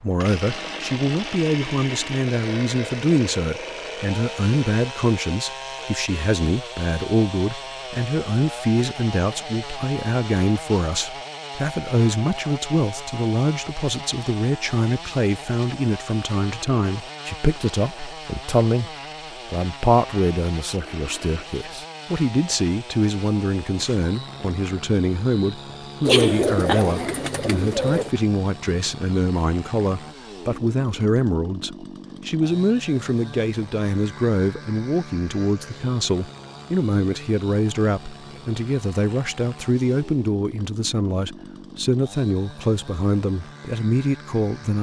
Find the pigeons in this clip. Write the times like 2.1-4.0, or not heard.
26.1-28.1.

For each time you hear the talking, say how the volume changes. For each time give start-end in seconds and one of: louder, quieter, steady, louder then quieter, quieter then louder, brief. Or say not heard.
0.0-44.7 steady.